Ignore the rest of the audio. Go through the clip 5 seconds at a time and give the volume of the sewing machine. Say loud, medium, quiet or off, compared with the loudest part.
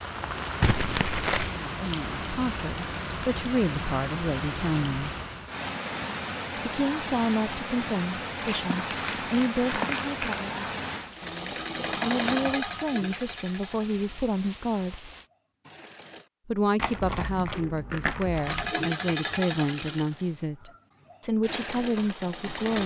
off, off, loud, loud, loud.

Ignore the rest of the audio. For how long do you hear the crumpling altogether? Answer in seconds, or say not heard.
5 s.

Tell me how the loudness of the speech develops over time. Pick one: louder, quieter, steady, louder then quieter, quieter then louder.
steady.